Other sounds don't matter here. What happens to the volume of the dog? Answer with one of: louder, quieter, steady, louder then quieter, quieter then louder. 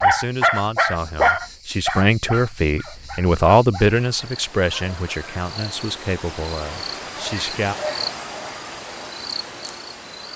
quieter.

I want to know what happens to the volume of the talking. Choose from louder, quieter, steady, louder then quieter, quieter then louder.
louder then quieter.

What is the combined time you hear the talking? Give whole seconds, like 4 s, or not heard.
8 s.